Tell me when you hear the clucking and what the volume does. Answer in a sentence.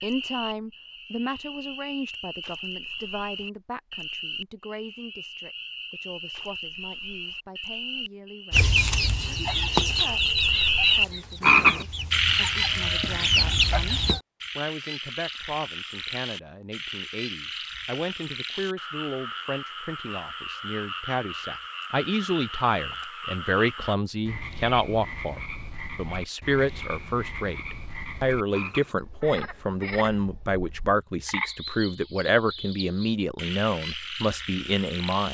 You can hear the clucking from 8.5 to 14.2 s, getting quieter then louder.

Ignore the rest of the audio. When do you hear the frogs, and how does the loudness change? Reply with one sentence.
You can hear the frogs from 0.0 to 35.2 s, getting louder then quieter.